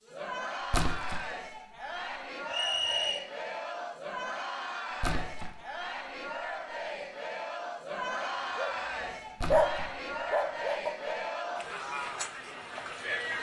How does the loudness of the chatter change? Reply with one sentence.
The volume of the chatter stays about the same.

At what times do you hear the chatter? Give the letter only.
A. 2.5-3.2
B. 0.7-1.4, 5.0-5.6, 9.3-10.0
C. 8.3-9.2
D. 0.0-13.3
D.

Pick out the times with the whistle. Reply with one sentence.
You can hear the whistle from 2.5 to 3.2 s.